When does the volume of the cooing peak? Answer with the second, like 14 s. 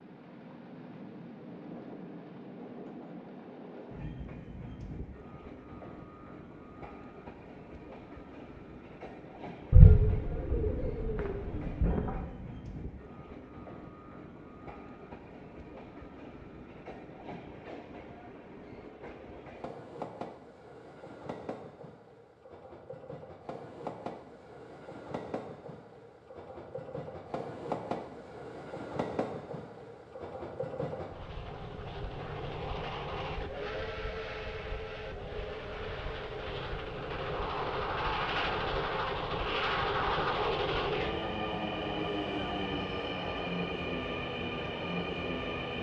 10 s.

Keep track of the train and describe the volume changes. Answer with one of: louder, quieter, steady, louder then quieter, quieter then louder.
louder.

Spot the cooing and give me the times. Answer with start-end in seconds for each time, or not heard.
9.7-12.2.